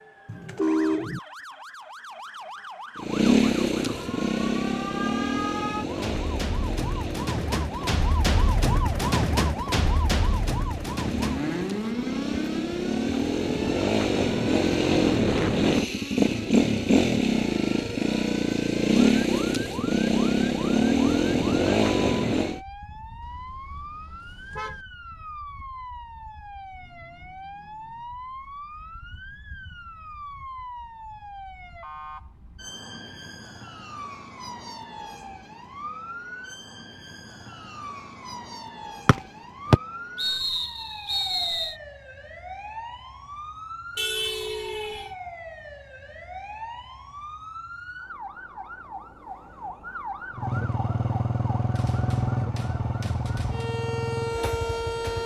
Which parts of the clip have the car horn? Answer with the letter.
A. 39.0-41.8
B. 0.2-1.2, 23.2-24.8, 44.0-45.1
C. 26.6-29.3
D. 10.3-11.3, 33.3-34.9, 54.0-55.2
B.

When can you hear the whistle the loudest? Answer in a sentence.
The volume of the whistle peaks at 40 seconds.